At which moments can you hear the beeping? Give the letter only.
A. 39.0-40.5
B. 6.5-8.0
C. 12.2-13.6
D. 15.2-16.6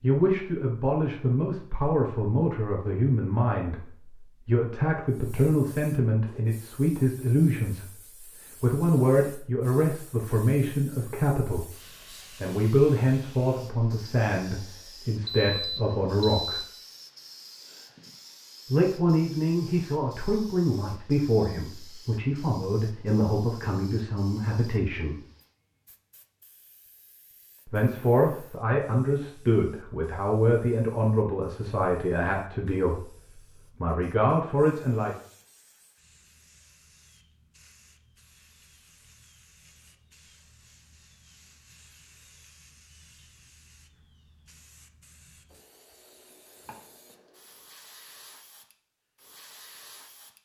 D.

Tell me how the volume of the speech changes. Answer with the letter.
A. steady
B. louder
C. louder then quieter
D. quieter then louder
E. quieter
A.